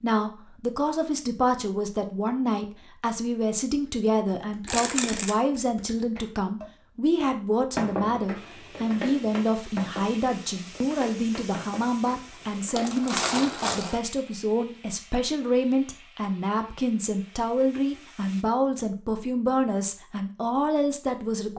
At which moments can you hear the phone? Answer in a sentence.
The phone can't be heard in this clip.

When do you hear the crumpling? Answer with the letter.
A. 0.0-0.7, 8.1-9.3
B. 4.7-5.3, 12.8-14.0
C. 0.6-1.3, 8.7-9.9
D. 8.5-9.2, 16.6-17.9
B.